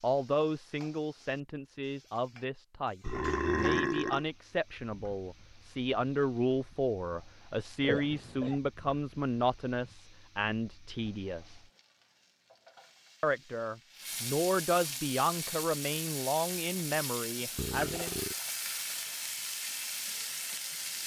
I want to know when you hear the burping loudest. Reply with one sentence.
The volume of the burping peaks at 4 seconds.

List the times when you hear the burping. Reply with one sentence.
You can hear the burping from 3.0 to 4.2 s, from 7.8 to 8.6 s and from 17.6 to 18.4 s.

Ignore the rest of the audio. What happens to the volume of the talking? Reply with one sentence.
The volume of the talking stays about the same.